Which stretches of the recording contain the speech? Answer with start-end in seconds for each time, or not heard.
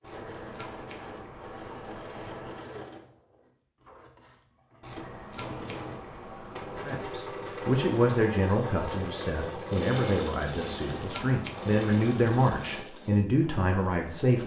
6.8-14.4.